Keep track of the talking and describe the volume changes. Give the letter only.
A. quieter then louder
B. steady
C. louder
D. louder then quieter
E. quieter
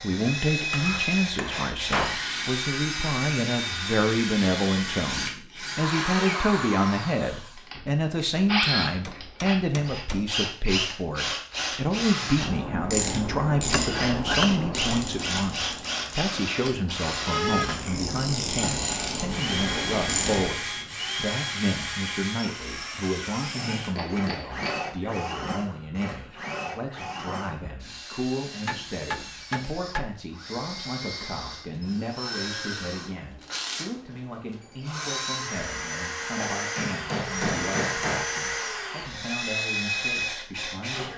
E.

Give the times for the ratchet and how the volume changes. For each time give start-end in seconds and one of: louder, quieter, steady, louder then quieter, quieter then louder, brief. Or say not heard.
12.3-20.5 quieter then louder.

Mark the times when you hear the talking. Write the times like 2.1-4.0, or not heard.
0.0-41.1.